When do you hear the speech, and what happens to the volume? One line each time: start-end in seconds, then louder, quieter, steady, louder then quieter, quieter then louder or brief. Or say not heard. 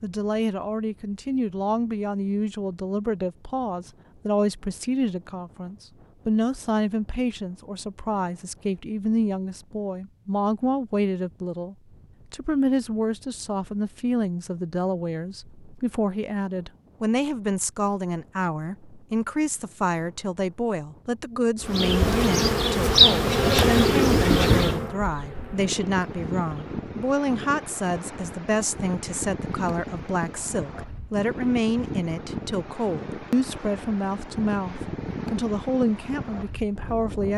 0.0-37.3 steady.